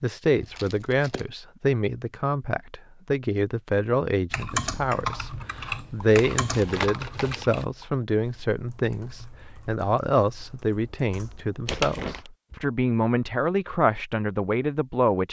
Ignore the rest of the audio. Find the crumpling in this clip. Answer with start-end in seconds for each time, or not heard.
0.3-1.2, 6.0-7.7, 11.7-12.3.